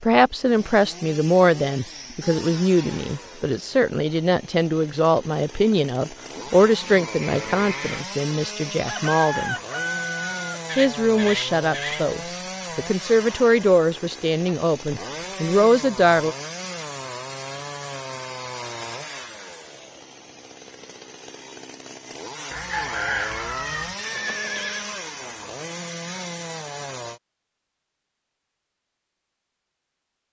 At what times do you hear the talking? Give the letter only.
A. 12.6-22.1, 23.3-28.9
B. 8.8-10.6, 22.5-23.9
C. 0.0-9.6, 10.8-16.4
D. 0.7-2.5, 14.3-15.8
C.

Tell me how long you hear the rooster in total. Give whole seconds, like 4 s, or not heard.
3 s.